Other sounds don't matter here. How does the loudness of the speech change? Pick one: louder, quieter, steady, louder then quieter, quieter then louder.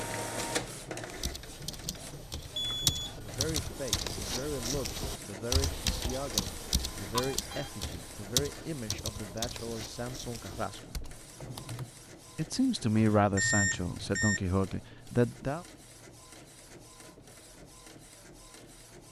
louder.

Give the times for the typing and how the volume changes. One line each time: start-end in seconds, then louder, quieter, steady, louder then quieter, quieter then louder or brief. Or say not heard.
1.1-11.9 quieter.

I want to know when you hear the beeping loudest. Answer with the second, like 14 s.
14 s.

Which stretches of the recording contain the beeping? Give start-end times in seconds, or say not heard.
2.5-3.1, 6.8-7.7, 13.0-14.4.